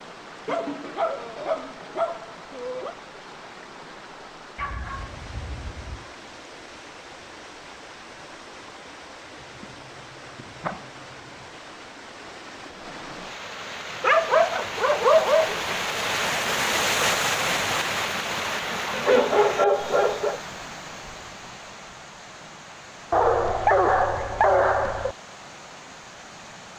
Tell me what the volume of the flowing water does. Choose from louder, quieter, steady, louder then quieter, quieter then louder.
louder then quieter.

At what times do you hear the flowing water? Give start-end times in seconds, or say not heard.
0.0-26.7.